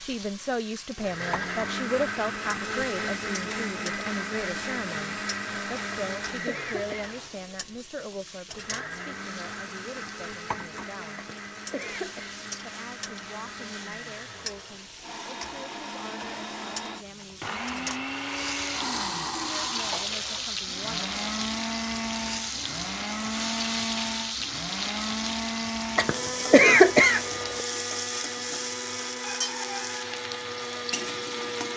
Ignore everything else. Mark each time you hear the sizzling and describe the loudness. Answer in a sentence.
You can hear the sizzling from 0.0 to 31.7 s, getting louder.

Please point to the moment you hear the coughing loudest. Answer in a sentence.
The volume of the coughing peaks at 27 seconds.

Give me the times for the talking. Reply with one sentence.
You can hear the talking from 0.0 to 11.2 s, from 12.6 to 18.0 s and from 19.4 to 21.1 s.